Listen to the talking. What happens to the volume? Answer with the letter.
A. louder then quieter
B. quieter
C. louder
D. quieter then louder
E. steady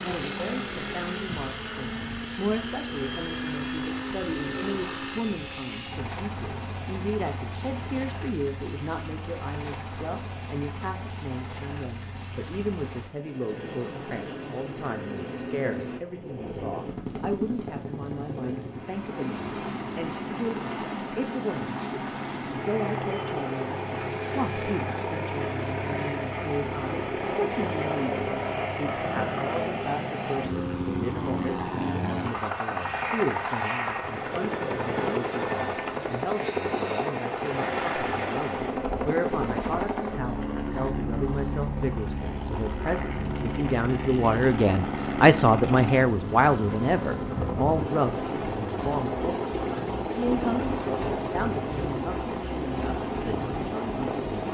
C.